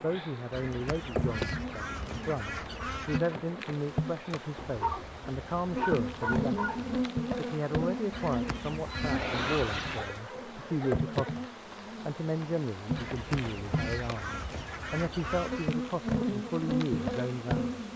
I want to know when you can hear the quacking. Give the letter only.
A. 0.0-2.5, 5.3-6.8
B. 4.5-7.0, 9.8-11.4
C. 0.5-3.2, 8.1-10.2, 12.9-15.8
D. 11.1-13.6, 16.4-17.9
C.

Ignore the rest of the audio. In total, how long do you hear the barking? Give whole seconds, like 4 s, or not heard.
4 s.